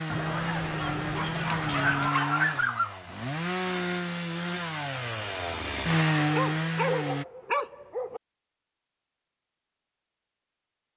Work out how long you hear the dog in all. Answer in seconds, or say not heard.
4 s.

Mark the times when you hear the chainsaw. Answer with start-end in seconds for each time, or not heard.
0.0-7.2.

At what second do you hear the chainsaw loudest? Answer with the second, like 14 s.
6 s.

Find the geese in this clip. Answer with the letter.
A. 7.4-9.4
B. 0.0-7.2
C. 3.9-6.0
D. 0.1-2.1
D.